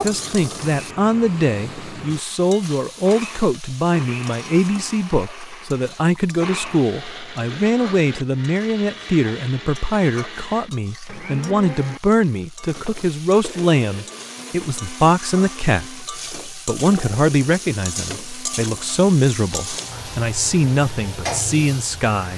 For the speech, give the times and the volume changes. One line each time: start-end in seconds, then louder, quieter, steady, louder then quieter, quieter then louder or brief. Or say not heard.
0.0-22.3 steady.